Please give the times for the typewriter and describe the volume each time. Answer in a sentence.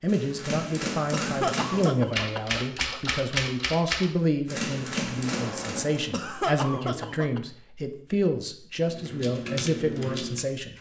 The typewriter can be heard from 0.1 to 6.0 s, at a steady volume; and briefly from 8.8 to 10.7 s.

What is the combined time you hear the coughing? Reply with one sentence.
You can hear the coughing for 3 seconds altogether.